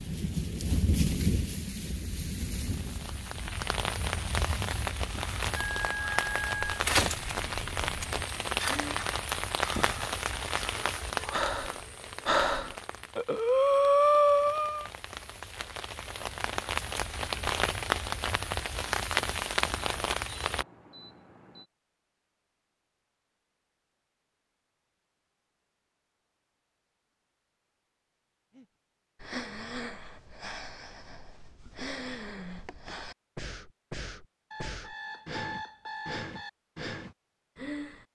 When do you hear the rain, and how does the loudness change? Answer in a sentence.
The rain can be heard from 0.0 to 20.6 s, getting quieter then louder.